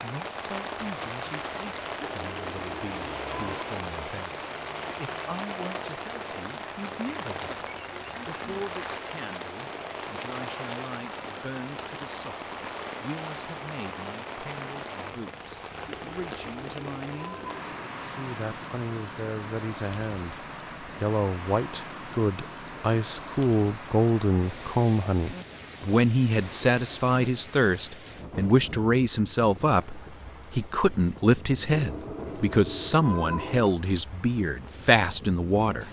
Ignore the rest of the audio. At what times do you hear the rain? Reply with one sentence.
The rain can be heard from 0.0 to 35.8 s.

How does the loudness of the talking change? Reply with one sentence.
The loudness of the talking goes up.